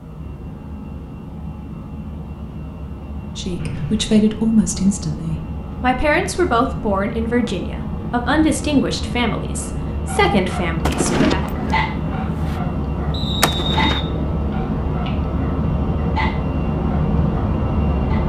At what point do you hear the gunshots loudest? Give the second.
11 s.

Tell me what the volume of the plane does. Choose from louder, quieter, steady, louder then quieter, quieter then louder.
louder.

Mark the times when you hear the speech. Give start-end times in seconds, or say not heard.
3.4-11.4.